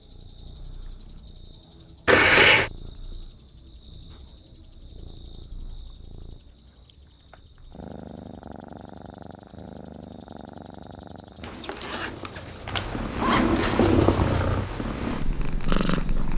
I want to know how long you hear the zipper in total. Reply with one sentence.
You can hear the zipper for 3 seconds altogether.